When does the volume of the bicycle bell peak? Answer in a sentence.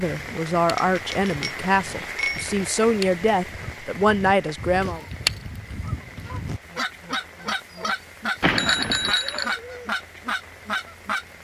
The volume of the bicycle bell peaks at 9 seconds.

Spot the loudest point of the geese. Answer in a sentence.
The loudest moment of the geese is at 5 seconds.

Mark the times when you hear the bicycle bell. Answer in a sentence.
The bicycle bell can be heard from 0.8 to 2.5 s and from 8.4 to 9.6 s.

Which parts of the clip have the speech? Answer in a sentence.
The speech can be heard from 0.0 to 5.0 s.